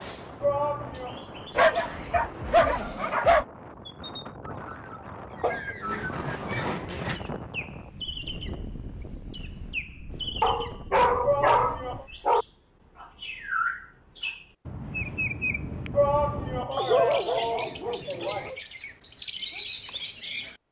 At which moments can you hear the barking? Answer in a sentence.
You can hear the barking from 1.6 to 3.5 s, from 5.4 to 7.2 s, from 10.4 to 12.4 s and from 16.8 to 18.6 s.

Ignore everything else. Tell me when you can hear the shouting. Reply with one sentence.
The shouting can be heard from 0.4 to 1.2 s, from 11.2 to 12.1 s and from 15.9 to 18.5 s.